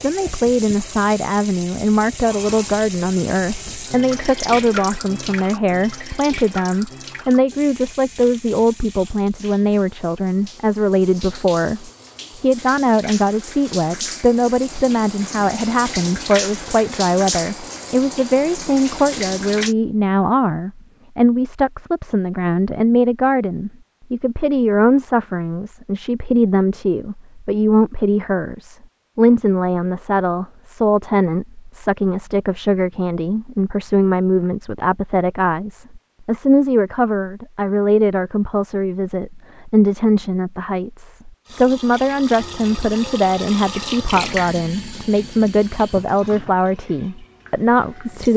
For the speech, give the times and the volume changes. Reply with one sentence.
The speech can be heard from 0.0 to 48.3 s, at a steady volume.